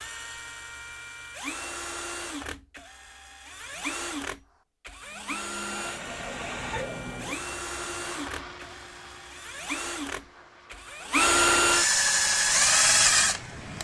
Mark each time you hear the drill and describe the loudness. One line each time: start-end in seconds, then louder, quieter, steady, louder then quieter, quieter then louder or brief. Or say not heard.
0.0-13.7 louder.